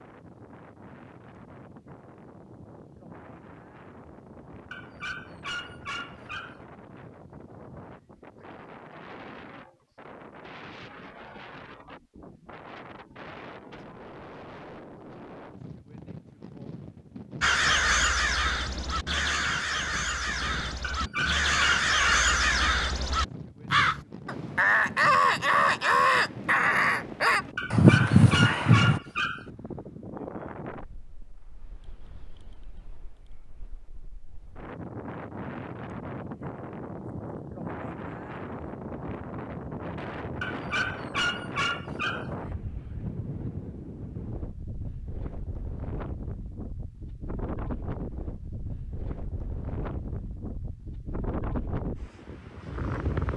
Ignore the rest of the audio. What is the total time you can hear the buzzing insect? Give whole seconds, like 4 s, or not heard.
not heard.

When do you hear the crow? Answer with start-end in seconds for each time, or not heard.
17.4-29.0.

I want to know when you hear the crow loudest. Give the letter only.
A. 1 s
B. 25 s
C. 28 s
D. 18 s
C.